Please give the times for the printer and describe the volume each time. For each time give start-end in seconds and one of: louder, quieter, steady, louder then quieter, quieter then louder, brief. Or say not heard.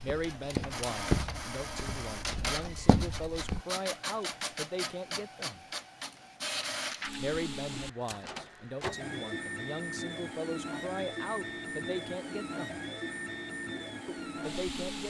0.0-15.0 steady.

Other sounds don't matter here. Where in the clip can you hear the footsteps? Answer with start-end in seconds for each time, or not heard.
0.0-3.6.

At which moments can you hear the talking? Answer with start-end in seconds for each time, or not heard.
0.0-5.7, 7.2-12.8, 14.1-15.0.